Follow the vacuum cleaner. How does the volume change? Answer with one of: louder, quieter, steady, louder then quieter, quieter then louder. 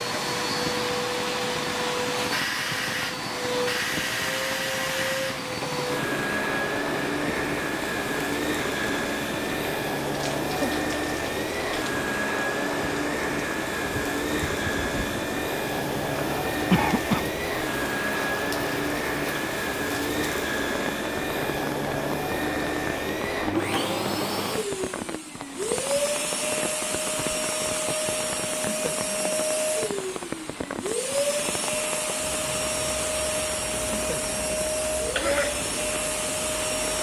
steady.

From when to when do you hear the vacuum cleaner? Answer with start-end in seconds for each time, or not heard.
0.0-36.9.